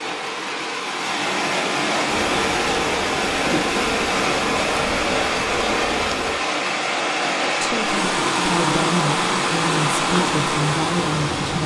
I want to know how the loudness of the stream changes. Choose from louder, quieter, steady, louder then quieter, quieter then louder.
steady.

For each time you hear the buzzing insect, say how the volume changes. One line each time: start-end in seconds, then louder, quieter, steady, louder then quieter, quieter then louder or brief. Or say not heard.
2.0-6.3 steady.